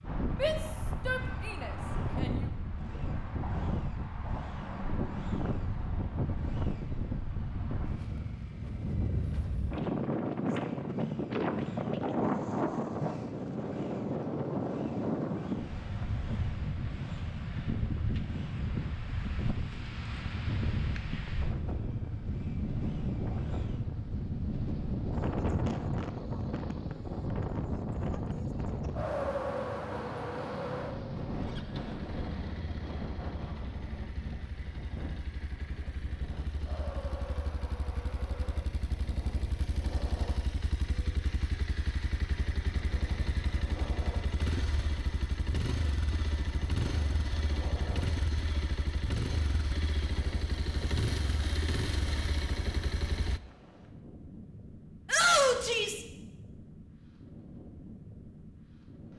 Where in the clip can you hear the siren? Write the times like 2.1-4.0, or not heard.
not heard.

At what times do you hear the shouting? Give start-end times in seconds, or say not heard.
0.3-2.5, 55.0-56.0.